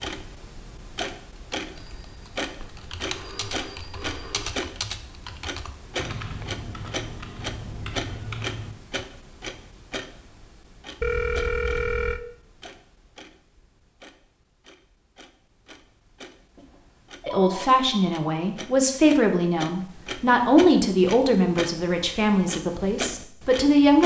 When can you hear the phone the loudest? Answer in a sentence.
The volume of the phone peaks at 11 seconds.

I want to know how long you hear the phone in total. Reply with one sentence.
The phone can be heard for 5 seconds in total.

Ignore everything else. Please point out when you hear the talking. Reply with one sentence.
You can hear the talking from 17.2 to 24.0 s.